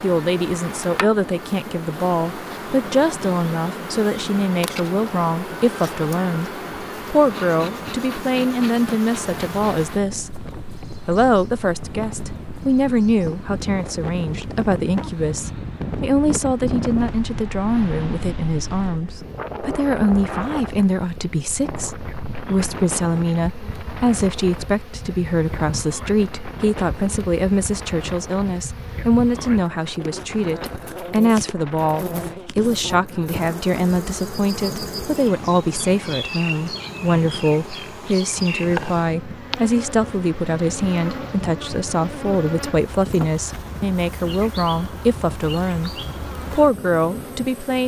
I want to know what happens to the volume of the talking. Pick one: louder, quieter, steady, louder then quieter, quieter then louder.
steady.